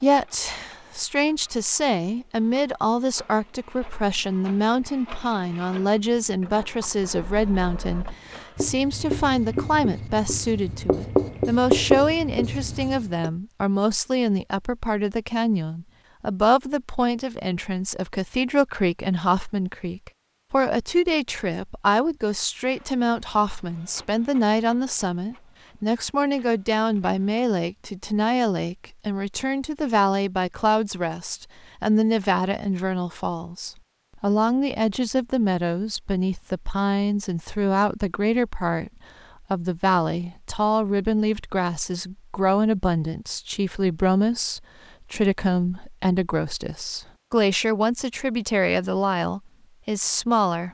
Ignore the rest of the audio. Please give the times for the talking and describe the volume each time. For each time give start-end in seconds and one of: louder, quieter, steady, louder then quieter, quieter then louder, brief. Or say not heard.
0.0-38.9 steady
39.5-50.6 steady.